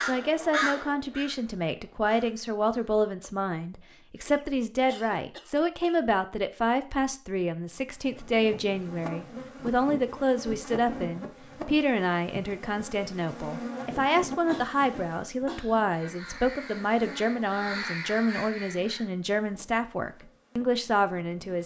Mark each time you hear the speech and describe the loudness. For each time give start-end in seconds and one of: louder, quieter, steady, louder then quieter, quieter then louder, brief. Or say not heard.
0.0-21.6 steady.